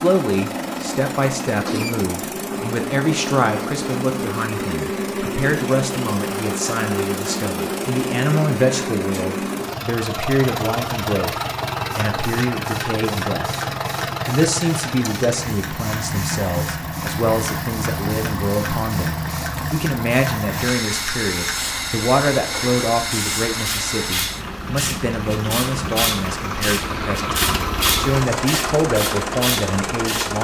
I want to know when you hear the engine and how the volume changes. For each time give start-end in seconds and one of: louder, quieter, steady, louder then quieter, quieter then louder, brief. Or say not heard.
0.0-30.4 steady.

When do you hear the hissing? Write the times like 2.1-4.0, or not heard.
11.9-30.4.